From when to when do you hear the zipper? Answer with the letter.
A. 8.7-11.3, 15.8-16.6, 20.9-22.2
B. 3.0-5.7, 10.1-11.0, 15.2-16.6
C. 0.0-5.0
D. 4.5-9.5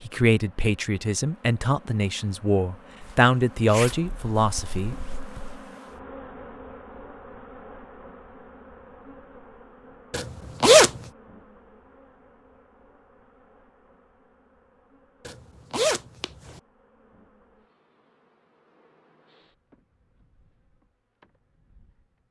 B.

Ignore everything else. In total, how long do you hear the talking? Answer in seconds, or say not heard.
5 s.